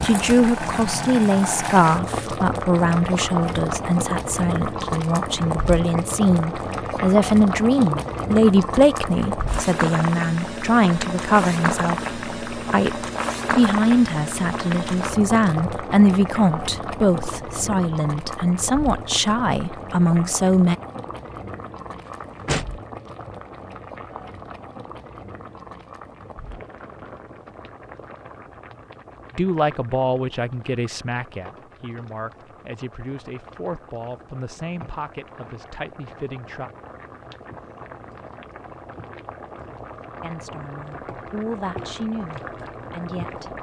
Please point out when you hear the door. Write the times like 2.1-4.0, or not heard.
22.1-22.6.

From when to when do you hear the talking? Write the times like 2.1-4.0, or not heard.
0.0-20.8, 29.4-36.7, 40.2-43.5.